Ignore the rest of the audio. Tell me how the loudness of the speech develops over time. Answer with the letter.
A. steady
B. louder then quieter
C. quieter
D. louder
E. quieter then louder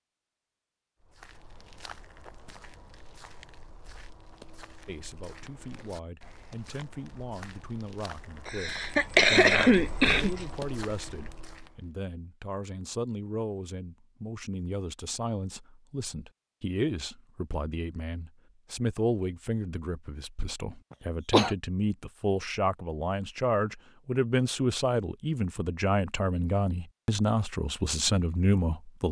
D.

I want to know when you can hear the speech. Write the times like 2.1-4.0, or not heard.
4.8-29.0.